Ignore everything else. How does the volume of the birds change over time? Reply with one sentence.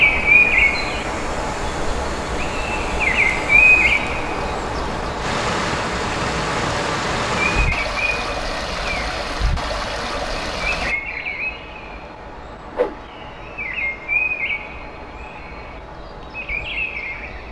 The volume of the birds goes down.